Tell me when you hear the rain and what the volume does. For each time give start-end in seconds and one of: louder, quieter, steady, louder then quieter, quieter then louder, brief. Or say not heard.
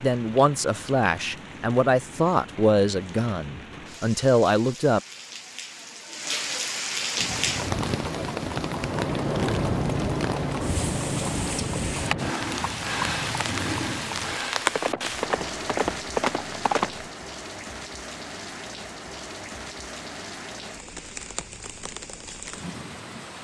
0.0-23.3 louder then quieter.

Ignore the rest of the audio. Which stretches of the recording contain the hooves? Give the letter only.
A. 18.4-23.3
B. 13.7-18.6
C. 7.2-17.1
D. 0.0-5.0
C.